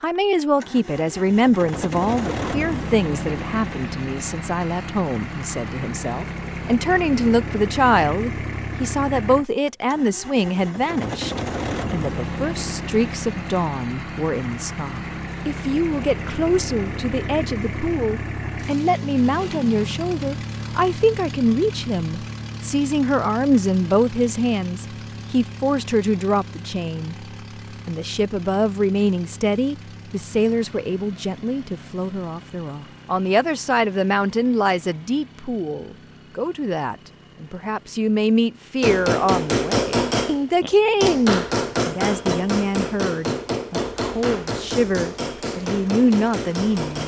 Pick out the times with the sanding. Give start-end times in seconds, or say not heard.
not heard.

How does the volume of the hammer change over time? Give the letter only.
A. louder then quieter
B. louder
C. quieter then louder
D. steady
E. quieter
E.